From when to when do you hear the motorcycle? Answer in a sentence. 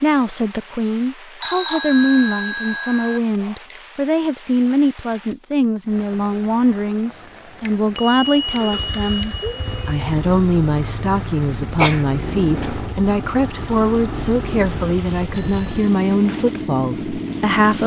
The motorcycle can be heard from 8.4 to 17.8 s.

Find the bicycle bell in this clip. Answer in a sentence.
The bicycle bell can be heard from 1.4 to 3.2 s, from 7.7 to 10.1 s and from 15.3 to 15.9 s.